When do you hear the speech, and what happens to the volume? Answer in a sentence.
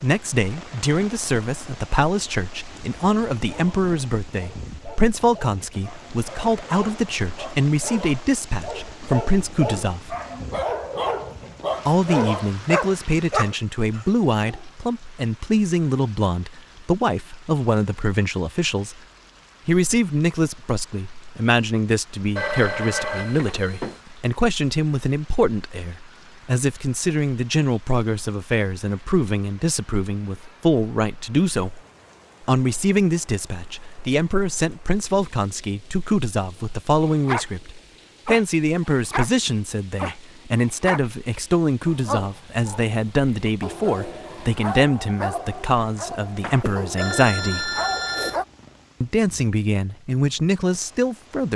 You can hear the speech from 0.0 to 10.2 s, at a steady volume; from 11.8 to 19.0 s, at a steady volume; from 19.6 to 31.8 s, at a steady volume; from 32.4 to 47.7 s, at a steady volume; and briefly from 49.0 to 51.5 s.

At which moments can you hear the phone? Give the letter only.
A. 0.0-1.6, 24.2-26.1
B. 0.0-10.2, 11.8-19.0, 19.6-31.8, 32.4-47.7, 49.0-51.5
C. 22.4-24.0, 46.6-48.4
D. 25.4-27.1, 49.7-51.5
C.